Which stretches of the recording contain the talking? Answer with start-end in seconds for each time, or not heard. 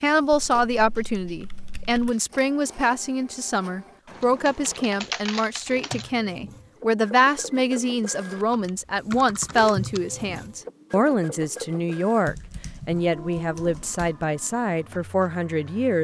0.0-16.0.